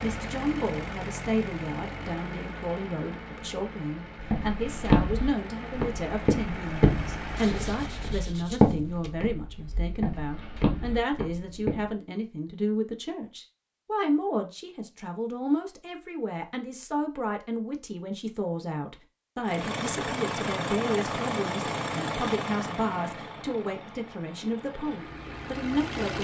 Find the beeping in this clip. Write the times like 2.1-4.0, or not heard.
not heard.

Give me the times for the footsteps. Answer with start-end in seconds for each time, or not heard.
4.2-11.8.